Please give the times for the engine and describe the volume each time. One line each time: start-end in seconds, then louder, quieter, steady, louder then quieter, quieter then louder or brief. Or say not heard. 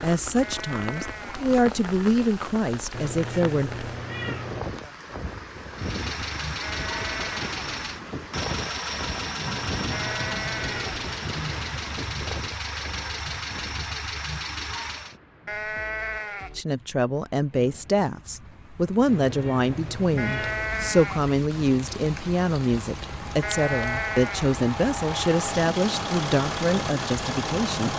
5.8-15.2 steady
21.7-27.9 louder.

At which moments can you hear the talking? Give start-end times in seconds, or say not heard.
0.0-3.7, 16.6-27.9.